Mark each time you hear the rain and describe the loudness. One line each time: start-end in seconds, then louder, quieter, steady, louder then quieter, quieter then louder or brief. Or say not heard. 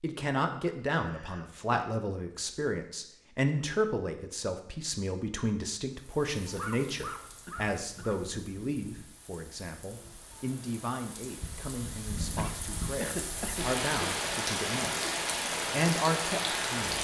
6.0-16.9 louder.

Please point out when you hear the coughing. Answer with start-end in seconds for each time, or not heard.
0.7-1.9, 6.5-8.2, 12.3-13.7.